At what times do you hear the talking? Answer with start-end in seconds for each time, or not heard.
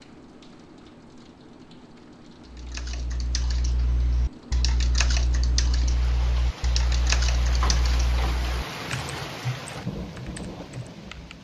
not heard.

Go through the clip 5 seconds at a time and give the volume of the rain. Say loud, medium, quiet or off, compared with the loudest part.
medium, loud, loud.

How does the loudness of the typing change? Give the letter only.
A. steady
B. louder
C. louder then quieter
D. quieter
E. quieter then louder
C.